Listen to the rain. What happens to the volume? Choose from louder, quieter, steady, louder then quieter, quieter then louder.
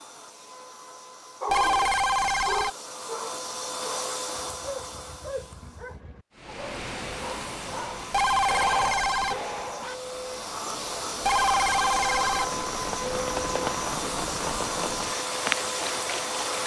quieter then louder.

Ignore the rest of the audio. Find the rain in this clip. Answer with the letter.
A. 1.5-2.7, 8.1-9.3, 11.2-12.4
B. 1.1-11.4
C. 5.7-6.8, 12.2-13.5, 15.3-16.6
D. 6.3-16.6
D.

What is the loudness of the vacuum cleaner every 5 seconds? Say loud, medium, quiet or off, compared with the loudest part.
medium, medium, loud, loud.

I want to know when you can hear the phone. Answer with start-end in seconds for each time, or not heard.
1.5-2.7, 8.1-9.3, 11.2-12.4.